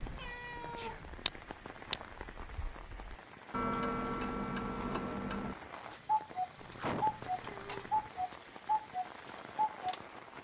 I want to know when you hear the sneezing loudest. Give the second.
7 s.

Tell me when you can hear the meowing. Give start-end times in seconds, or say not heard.
0.1-1.1, 6.5-8.1.